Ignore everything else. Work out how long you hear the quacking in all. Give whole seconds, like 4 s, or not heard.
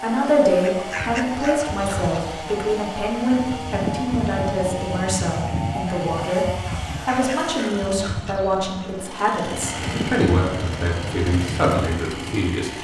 12 s.